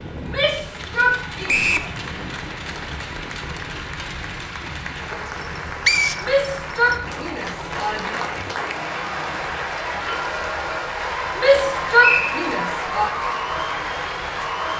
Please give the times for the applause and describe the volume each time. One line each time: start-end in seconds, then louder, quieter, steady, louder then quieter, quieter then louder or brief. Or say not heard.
0.0-14.7 louder.